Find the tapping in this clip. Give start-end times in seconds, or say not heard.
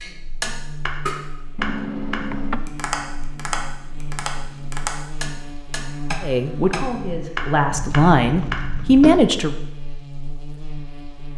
0.0-9.2.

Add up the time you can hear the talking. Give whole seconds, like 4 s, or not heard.
3 s.